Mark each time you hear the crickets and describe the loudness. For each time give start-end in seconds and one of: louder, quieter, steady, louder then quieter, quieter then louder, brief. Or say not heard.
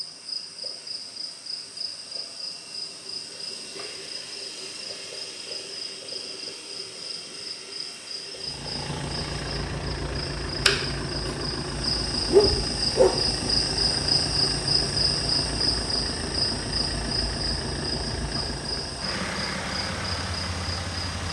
0.0-21.2 louder then quieter.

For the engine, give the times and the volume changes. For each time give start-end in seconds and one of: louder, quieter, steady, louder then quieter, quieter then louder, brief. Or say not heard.
8.3-21.2 steady.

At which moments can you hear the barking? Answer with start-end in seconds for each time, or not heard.
12.3-13.5.